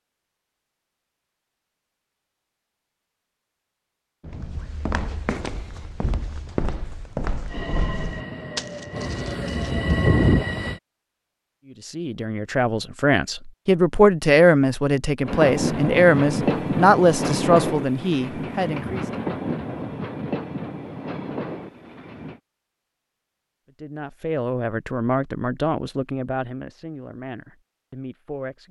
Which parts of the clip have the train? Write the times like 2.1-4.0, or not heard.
7.5-10.8, 15.2-22.4.